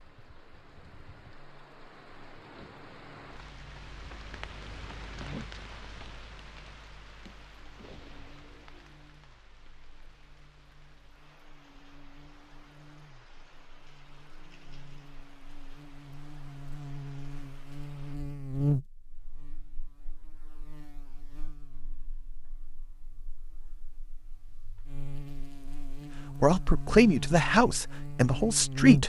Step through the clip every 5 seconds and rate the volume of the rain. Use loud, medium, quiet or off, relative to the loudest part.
loud, loud, medium, medium, off, off.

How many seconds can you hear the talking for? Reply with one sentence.
The talking can be heard for 3 seconds in total.